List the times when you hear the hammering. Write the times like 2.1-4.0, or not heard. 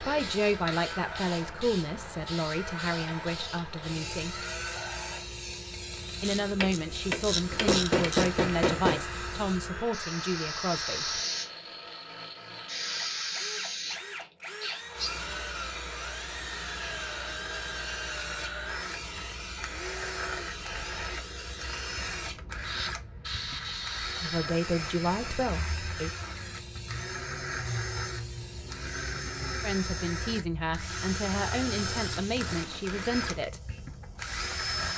7.5-9.1, 31.8-33.2.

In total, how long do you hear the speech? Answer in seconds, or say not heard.
15 s.